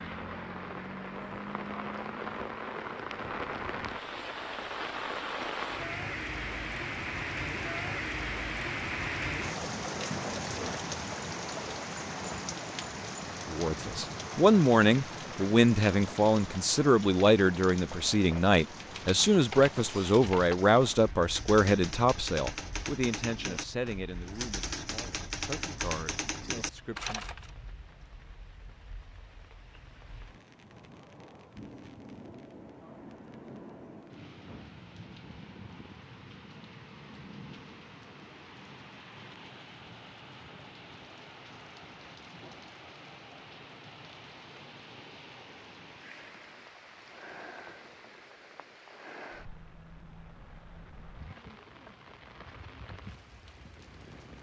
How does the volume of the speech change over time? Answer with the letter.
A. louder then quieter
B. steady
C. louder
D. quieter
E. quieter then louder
D.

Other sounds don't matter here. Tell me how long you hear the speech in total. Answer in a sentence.
You can hear the speech for 14 seconds altogether.